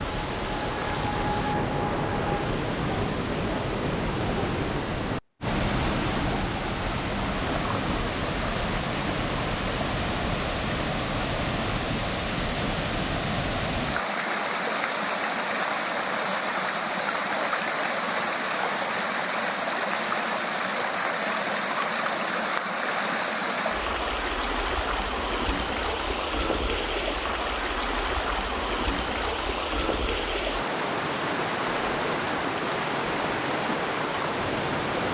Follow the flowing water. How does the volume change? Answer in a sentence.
The loudness of the flowing water stays about the same.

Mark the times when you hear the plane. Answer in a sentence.
You can hear the plane from 0.0 to 2.6 s.